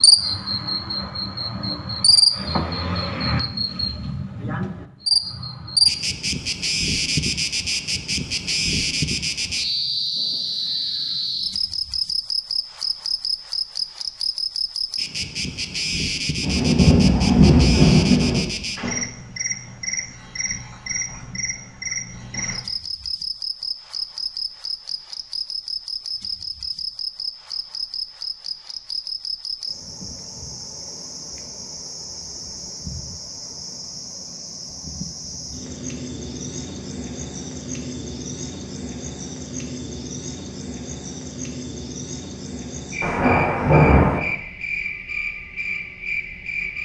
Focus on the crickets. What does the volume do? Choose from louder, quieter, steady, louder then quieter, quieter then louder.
quieter.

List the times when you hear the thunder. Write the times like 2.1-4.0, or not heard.
16.4-18.4, 43.0-44.2.